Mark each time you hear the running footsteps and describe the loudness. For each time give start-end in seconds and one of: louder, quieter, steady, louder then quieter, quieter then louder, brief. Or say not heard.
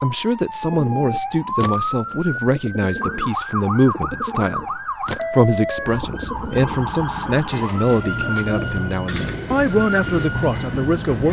not heard.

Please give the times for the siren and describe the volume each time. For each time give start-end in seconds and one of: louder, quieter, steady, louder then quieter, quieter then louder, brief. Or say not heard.
0.0-11.2 steady.